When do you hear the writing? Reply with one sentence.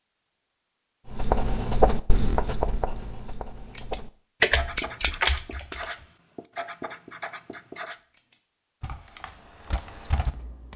You can hear the writing from 1.1 to 8.0 s.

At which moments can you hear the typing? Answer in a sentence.
You can hear the typing from 3.8 to 6.0 s and from 8.2 to 10.7 s.